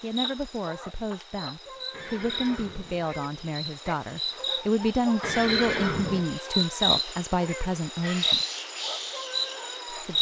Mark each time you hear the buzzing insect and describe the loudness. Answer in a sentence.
You can hear the buzzing insect from 0.0 to 10.1 s, getting louder.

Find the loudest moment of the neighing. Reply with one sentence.
The volume of the neighing peaks at 6 seconds.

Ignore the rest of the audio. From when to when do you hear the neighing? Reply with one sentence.
You can hear the neighing from 1.9 to 3.1 s and from 5.2 to 6.2 s.